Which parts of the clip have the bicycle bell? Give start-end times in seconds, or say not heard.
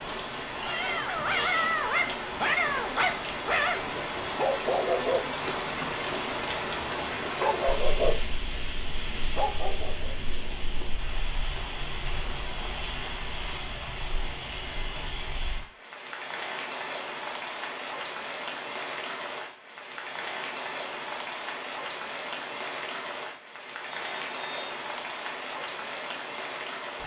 23.9-24.7.